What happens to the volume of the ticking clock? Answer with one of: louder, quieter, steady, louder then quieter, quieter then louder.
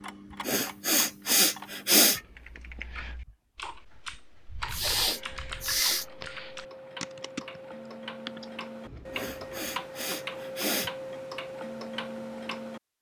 louder.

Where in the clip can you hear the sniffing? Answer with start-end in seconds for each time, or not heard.
0.5-2.2, 4.7-6.0, 9.1-10.9.